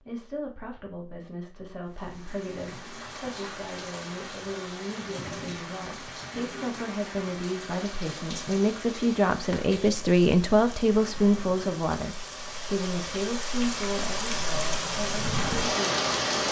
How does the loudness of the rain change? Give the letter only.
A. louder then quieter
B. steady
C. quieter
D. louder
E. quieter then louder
D.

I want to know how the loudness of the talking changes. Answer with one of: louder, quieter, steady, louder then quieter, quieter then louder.
louder then quieter.